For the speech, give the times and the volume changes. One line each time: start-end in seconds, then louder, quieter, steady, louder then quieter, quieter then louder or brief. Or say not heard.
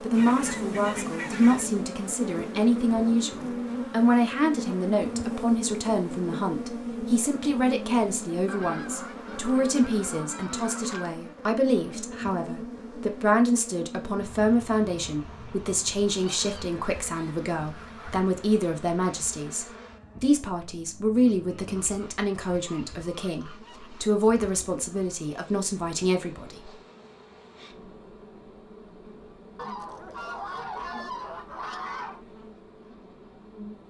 0.0-26.7 steady.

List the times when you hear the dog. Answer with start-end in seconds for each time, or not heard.
not heard.